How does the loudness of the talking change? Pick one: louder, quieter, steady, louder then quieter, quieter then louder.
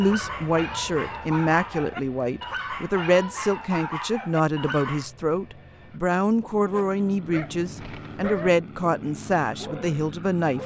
steady.